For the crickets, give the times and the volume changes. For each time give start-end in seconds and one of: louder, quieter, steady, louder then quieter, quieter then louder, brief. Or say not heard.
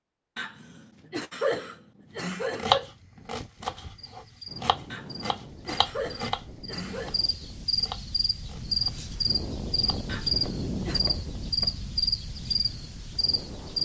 4.0-13.7 louder.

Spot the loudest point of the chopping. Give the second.
3 s.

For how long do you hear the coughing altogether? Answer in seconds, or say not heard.
6 s.